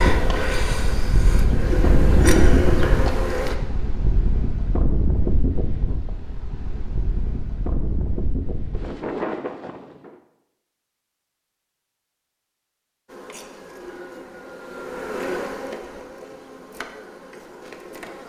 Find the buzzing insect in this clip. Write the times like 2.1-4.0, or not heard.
0.0-3.5, 13.1-18.2.